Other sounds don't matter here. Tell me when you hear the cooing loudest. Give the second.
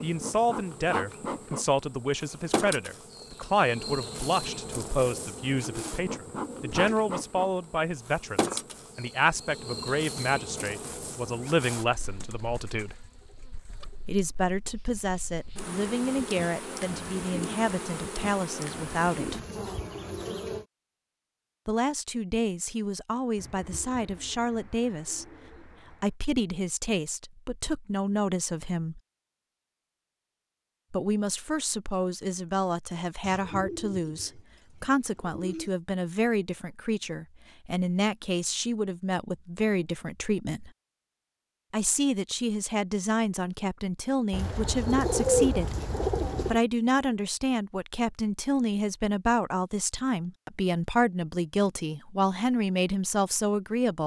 45 s.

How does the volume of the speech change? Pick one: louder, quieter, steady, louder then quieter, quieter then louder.
steady.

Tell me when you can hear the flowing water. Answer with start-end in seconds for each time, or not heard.
not heard.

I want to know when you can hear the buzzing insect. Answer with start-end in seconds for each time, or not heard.
0.0-20.6.